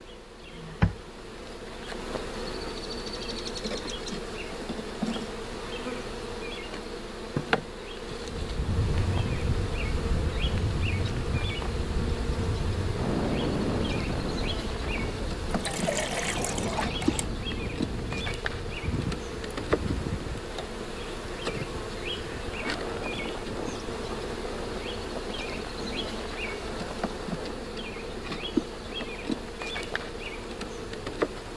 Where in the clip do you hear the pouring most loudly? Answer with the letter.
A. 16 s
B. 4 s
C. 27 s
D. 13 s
A.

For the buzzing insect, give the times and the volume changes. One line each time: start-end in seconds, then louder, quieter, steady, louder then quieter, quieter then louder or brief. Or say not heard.
0.0-31.5 steady.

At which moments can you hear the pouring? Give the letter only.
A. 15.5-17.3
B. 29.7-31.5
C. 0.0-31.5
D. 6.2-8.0
A.